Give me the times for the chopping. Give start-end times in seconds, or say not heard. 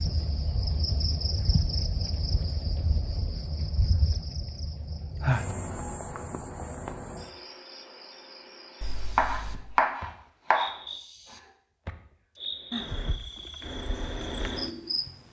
8.8-10.7.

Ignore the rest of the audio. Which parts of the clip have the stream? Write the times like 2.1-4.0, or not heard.
not heard.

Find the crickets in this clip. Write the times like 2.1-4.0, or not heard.
0.0-15.2.